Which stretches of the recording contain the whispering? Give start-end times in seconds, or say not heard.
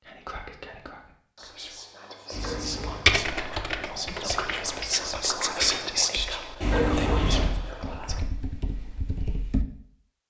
0.0-8.2.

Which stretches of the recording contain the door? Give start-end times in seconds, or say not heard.
2.3-3.1, 6.6-7.5.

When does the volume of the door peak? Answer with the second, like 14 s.
7 s.